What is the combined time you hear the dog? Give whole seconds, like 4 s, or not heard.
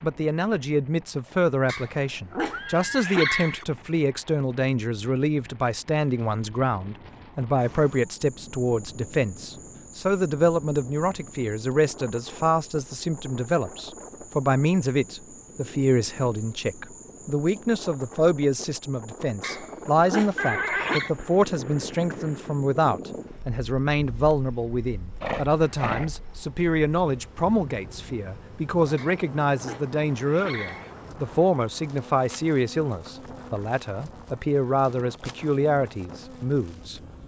6 s.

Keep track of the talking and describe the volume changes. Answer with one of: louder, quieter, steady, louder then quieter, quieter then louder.
steady.